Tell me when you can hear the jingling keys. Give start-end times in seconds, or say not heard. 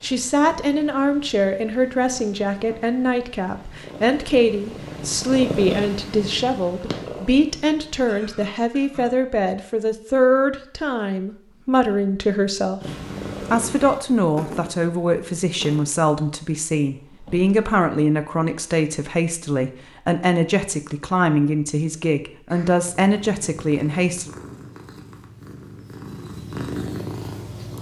not heard.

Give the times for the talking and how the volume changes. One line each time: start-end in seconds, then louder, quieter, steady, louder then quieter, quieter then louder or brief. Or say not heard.
0.0-12.8 steady
13.5-24.3 steady.